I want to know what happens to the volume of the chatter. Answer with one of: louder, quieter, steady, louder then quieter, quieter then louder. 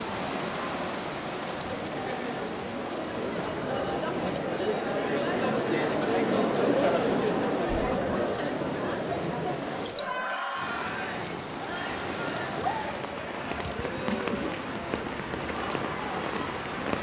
louder then quieter.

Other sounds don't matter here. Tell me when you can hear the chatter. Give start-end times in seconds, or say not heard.
0.0-16.9.